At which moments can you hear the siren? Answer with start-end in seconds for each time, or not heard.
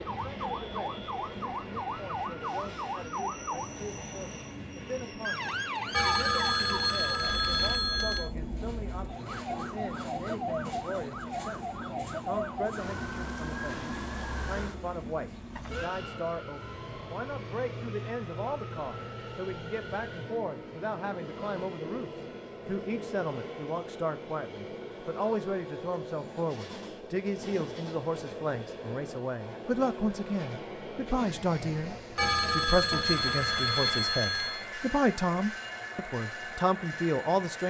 0.0-15.9.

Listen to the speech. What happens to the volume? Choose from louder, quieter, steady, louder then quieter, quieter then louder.
louder.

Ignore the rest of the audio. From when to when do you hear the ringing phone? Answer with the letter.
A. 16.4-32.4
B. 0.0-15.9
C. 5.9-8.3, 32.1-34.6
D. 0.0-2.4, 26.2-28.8
C.